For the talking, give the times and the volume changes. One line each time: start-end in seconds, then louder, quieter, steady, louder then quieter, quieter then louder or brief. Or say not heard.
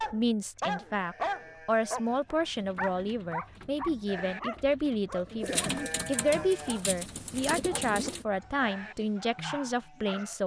0.1-10.4 steady.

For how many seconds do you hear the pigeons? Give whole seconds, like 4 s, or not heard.
6 s.